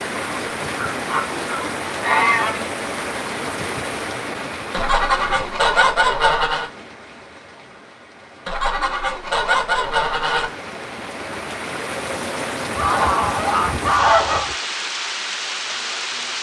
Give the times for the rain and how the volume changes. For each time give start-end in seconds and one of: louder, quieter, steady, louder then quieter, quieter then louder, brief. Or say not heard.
0.0-16.3 quieter then louder.